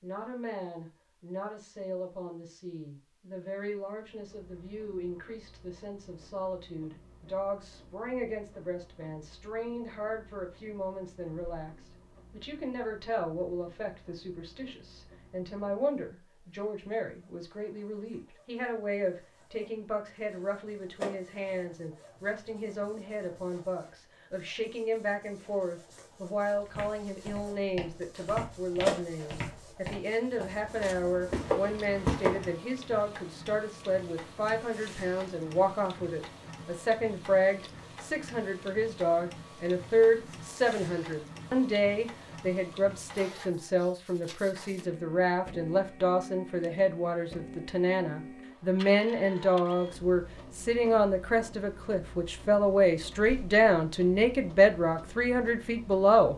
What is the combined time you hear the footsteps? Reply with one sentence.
You can hear the footsteps for 6 seconds altogether.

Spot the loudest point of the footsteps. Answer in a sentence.
The volume of the footsteps peaks at 32 seconds.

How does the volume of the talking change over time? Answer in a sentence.
The loudness of the talking goes up.